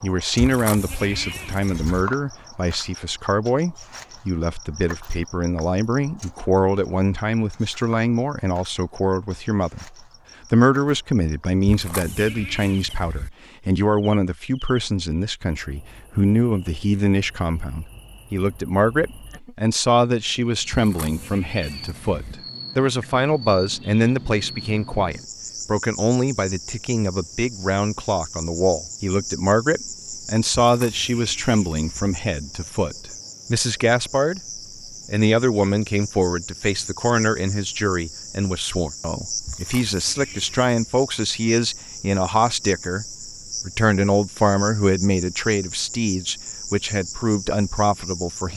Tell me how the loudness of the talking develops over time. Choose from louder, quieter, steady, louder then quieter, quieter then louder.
steady.